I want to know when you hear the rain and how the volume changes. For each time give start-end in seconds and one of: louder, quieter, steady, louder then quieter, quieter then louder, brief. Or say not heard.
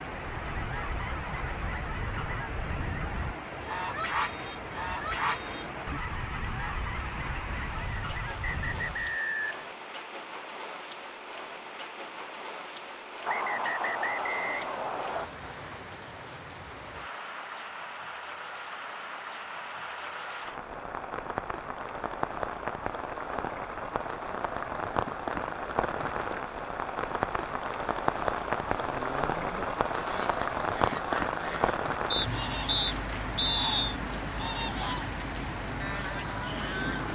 0.0-37.0 louder.